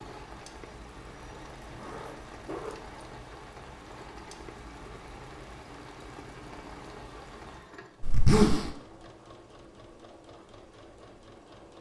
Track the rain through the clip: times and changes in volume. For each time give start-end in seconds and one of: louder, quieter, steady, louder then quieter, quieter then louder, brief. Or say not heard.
0.0-7.8 steady.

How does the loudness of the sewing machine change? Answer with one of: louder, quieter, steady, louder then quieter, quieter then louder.
steady.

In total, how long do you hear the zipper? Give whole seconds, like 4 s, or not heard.
2 s.